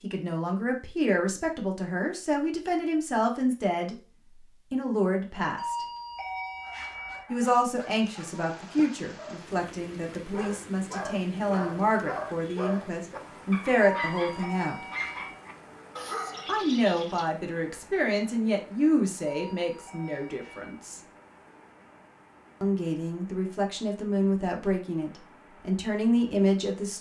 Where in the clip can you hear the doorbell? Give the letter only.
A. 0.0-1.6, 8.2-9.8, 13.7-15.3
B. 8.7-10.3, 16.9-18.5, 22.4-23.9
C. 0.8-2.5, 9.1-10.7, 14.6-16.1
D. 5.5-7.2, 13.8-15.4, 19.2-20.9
D.